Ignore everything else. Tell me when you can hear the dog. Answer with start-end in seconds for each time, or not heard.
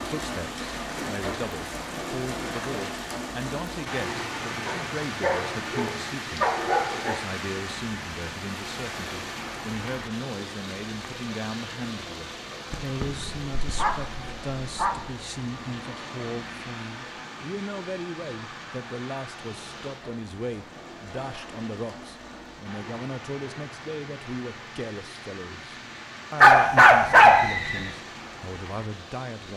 4.7-7.2, 12.7-15.1, 26.4-27.5.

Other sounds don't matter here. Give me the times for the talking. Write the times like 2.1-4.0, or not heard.
0.0-29.5.